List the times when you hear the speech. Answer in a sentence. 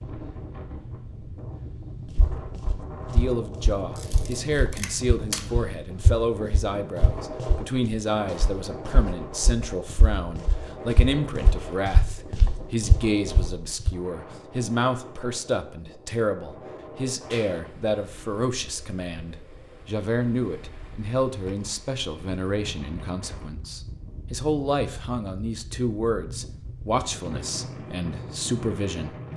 You can hear the speech from 3.1 to 29.3 s.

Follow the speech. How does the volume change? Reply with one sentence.
The volume of the speech stays about the same.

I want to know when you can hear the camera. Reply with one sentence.
The camera can be heard from 4.0 to 5.5 s.